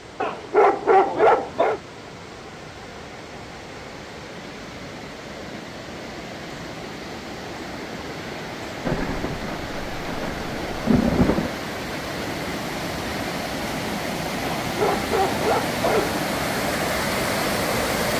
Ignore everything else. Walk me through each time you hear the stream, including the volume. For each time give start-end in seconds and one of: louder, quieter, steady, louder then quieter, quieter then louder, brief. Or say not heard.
0.0-18.1 louder.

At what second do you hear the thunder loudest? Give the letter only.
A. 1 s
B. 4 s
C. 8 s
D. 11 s
D.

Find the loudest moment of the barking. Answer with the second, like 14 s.
1 s.